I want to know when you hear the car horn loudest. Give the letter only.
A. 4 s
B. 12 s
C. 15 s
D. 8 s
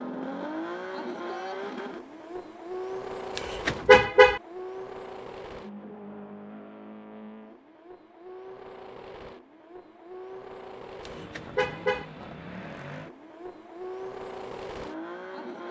A.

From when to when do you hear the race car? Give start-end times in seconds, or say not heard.
0.0-15.6.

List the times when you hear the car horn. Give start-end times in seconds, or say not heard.
3.4-4.4, 11.1-12.1.